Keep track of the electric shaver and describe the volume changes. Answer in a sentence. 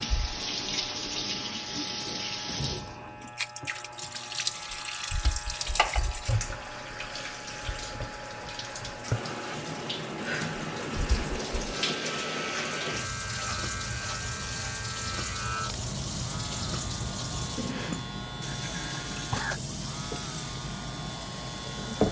The loudness of the electric shaver goes up.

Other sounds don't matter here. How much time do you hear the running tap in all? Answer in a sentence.
The running tap can be heard for 22 seconds in total.